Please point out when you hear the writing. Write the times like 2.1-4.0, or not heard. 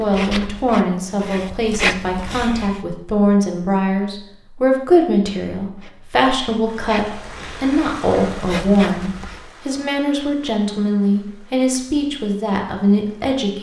0.0-2.8, 5.8-9.4.